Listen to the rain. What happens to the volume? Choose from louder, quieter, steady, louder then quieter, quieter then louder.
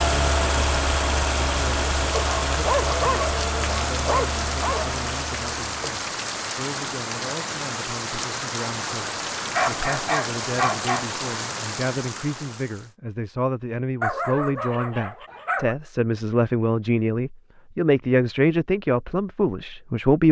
steady.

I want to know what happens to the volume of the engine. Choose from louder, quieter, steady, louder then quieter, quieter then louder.
quieter.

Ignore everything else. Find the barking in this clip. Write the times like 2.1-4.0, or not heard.
2.1-5.0, 9.5-11.1, 14.0-15.8.